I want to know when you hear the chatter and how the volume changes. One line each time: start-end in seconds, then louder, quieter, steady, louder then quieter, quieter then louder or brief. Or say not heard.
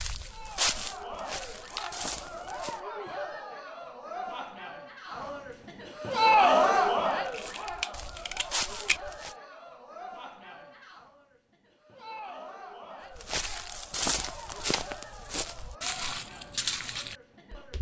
0.1-17.7 louder then quieter.